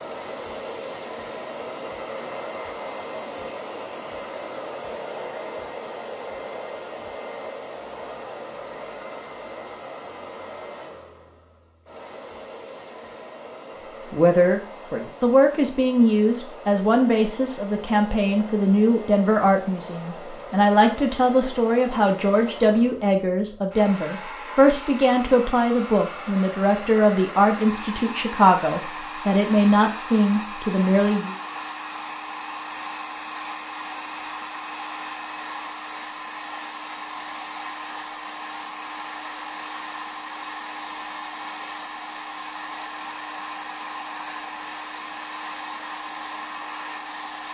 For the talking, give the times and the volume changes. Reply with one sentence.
You can hear the talking from 14.1 to 31.4 s, at a steady volume.